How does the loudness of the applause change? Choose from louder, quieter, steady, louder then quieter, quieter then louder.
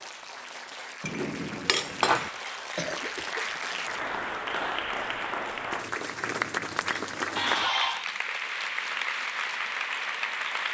louder.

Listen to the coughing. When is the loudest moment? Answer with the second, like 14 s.
8 s.